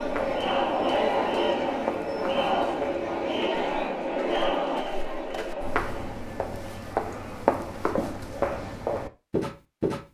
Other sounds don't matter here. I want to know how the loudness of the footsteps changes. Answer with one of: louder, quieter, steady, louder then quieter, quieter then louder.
louder.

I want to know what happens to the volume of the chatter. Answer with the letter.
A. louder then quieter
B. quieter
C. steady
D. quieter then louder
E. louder
B.